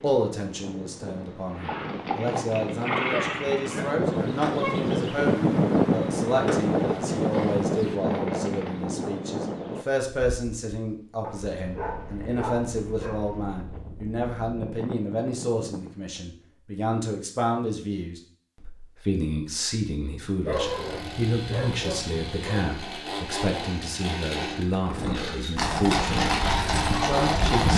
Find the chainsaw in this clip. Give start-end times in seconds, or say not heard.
20.5-27.7.